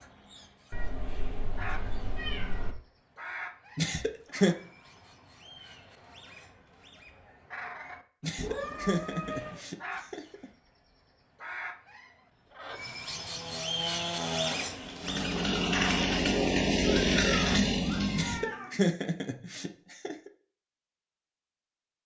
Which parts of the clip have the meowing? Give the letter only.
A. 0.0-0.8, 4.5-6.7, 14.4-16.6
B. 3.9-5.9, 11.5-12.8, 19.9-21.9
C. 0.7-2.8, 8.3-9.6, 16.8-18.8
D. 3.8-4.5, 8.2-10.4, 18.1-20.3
C.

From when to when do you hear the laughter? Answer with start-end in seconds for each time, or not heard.
3.8-4.5, 8.2-10.4, 18.1-20.3.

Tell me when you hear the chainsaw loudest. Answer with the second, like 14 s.
17 s.